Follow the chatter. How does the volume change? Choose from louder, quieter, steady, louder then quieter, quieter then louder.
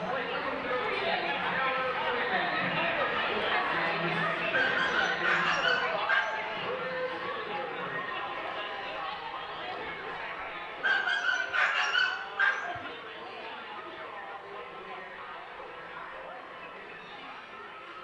quieter.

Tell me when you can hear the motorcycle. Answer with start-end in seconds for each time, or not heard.
not heard.